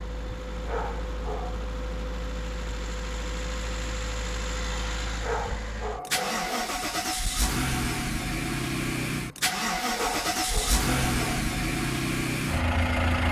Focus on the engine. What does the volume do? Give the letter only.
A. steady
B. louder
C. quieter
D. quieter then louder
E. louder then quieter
B.